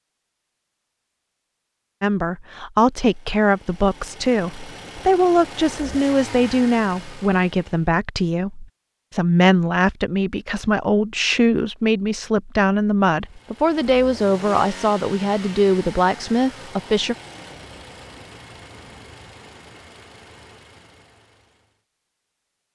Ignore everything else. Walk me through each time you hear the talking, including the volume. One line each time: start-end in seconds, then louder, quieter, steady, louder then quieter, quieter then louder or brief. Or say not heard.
2.0-17.1 steady.